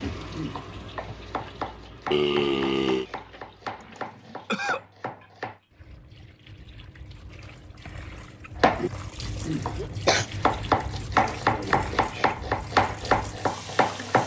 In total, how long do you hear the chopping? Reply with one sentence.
The chopping can be heard for 11 seconds in total.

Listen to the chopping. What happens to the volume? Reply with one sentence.
The volume of the chopping goes up.